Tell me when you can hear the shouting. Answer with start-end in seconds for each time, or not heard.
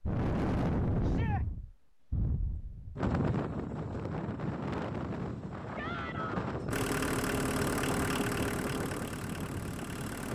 1.0-1.4, 5.8-6.5.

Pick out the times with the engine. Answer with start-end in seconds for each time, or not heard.
6.7-10.3.